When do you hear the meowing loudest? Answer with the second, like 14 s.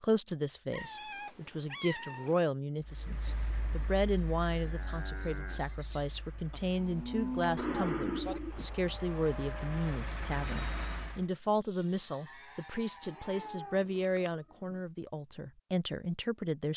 8 s.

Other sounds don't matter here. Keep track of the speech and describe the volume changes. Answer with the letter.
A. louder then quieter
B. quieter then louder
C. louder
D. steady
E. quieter
D.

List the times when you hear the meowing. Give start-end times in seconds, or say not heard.
0.7-2.4, 7.5-8.7, 13.1-14.8.